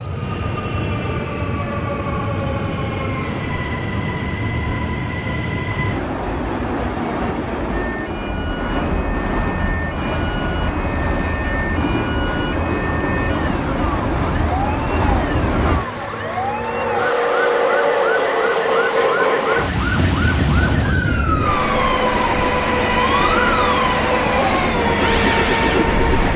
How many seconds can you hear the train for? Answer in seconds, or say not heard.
26 s.